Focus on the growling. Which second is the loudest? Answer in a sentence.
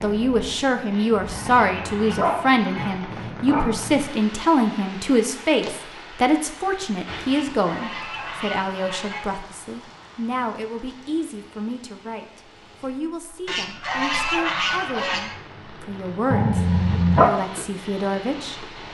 The loudest moment of the growling is at 17 seconds.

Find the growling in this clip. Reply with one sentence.
The growling can be heard from 1.3 to 4.0 s and from 16.3 to 17.3 s.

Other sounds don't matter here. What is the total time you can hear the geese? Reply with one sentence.
The geese can be heard for 6 seconds in total.